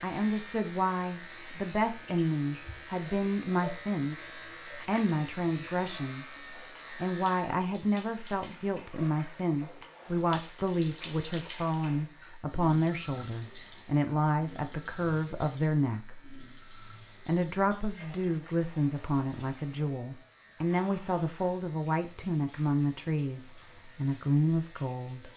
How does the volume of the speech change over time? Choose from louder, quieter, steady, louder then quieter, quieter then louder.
steady.